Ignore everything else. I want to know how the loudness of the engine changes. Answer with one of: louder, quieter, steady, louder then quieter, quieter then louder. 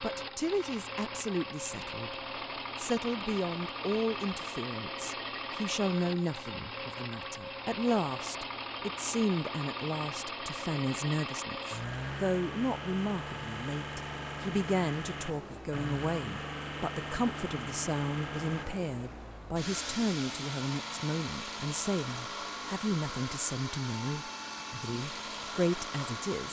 steady.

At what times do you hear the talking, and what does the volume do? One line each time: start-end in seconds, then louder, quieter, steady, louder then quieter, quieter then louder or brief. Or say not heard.
0.0-2.1 brief
2.8-26.4 steady.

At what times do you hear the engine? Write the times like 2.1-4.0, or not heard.
0.0-26.4.